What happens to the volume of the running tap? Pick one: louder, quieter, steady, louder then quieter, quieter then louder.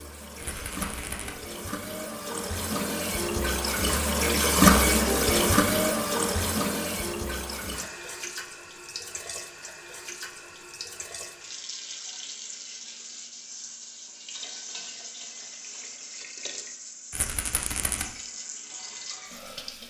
louder then quieter.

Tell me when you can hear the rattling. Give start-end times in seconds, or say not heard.
0.4-1.4, 17.1-18.1.